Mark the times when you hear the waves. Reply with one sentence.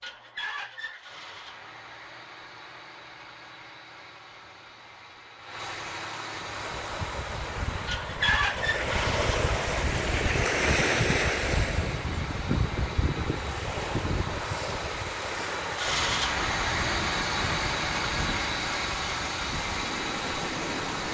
The waves can be heard from 6.4 to 21.0 s.